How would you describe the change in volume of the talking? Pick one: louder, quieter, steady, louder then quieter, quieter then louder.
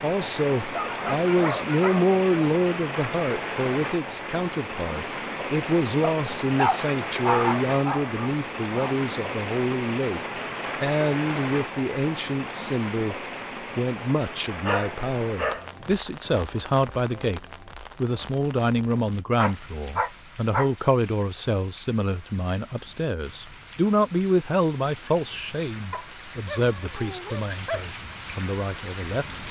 steady.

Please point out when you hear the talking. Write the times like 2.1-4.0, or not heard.
0.0-13.2, 13.8-29.2.